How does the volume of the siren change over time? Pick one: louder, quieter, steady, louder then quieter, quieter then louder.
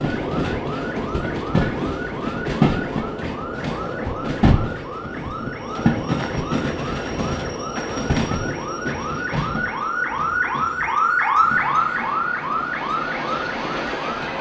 louder.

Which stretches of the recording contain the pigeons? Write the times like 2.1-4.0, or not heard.
not heard.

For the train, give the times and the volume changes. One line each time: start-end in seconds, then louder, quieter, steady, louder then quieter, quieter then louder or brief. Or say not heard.
0.0-14.3 quieter.